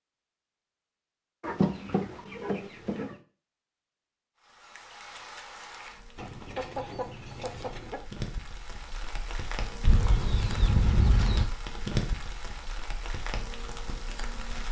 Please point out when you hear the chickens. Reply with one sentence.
The chickens can be heard from 1.4 to 3.1 s, from 6.2 to 8.0 s and from 9.8 to 11.4 s.